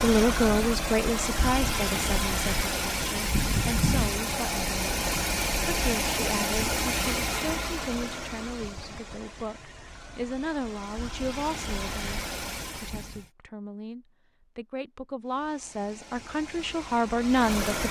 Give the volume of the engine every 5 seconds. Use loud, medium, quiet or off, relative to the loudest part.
loud, loud, medium, medium.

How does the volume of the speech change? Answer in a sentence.
The volume of the speech goes down, then up.